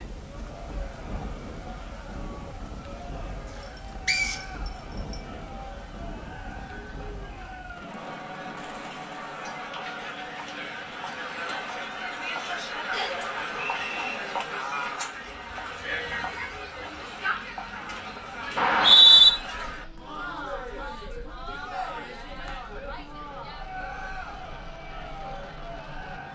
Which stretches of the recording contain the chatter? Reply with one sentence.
The chatter can be heard from 0.1 to 26.2 s.